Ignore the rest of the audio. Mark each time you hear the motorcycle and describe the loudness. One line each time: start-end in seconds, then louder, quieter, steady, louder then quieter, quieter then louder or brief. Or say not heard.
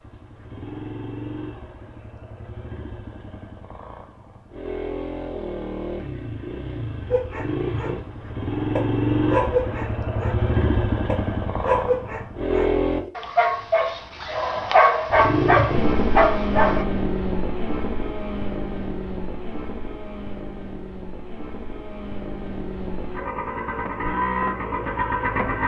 0.0-13.1 louder
15.1-25.6 quieter then louder.